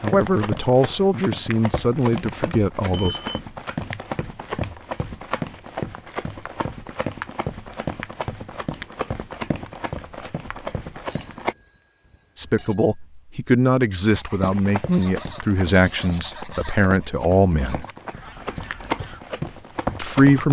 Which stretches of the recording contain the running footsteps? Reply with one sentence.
The running footsteps can be heard from 0.0 to 11.6 s and from 14.4 to 20.4 s.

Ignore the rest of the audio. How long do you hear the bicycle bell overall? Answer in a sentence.
You can hear the bicycle bell for 3 seconds altogether.